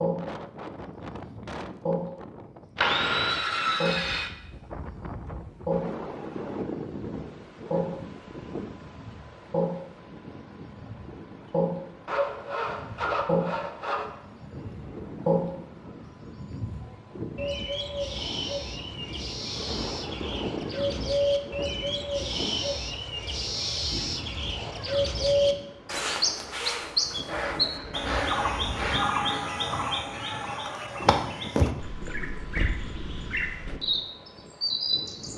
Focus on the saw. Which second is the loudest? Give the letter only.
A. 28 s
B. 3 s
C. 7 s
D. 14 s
B.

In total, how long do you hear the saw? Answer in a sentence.
You can hear the saw for 5 seconds altogether.